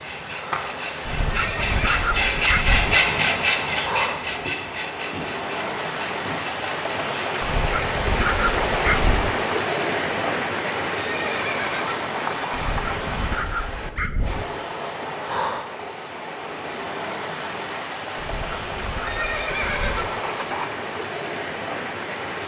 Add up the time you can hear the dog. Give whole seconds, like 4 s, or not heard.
8 s.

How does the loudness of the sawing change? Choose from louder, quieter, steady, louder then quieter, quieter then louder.
louder then quieter.